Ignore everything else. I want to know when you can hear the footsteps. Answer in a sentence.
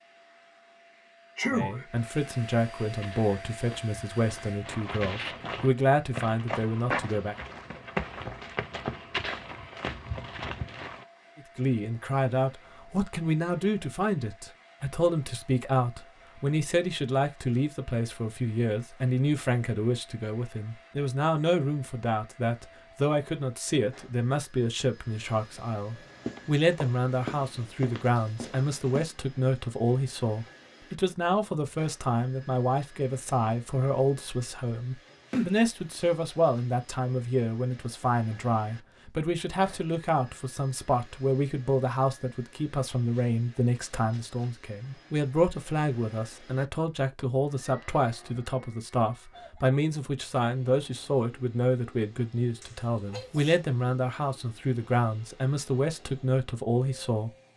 The footsteps can be heard from 3.0 to 11.1 s and from 26.1 to 29.1 s.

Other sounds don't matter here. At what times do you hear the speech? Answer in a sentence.
You can hear the speech from 1.5 to 7.3 s and from 11.3 to 57.3 s.